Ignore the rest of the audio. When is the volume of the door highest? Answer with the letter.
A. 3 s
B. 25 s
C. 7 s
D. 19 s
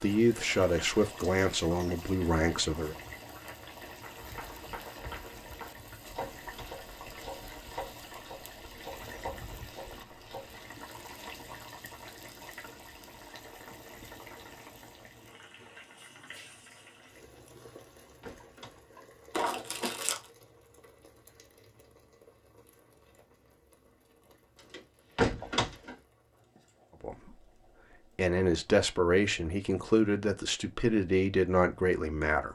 B.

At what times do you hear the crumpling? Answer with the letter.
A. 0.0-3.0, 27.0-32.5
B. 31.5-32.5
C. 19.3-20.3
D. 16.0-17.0
C.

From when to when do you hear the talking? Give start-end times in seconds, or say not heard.
0.0-3.0, 27.0-32.5.